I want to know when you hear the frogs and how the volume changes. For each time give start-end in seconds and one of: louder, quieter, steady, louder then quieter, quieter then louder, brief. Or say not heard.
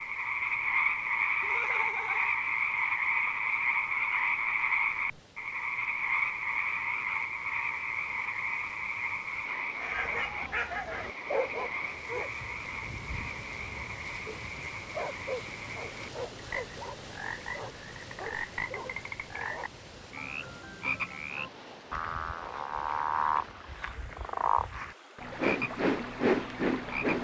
0.0-27.1 quieter then louder.